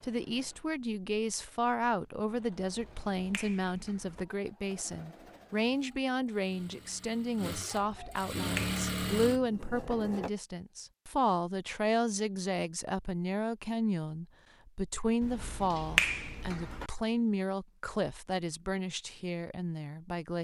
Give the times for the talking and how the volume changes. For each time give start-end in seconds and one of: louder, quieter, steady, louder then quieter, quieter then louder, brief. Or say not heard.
0.0-20.4 steady.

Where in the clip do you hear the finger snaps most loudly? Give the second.
16 s.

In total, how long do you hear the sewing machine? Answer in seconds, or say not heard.
10 s.